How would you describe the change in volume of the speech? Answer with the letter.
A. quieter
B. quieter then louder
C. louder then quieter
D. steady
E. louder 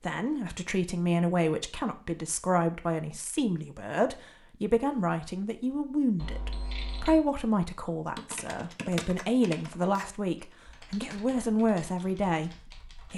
D.